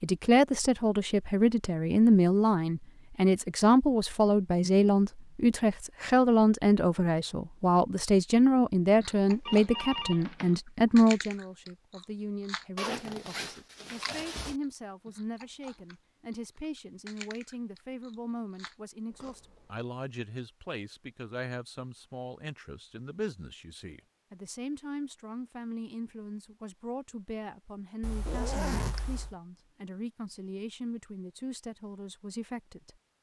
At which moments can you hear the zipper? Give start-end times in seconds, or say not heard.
12.8-14.6, 28.2-28.9.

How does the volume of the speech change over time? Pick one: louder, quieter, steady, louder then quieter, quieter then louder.
quieter.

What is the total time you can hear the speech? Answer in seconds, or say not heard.
33 s.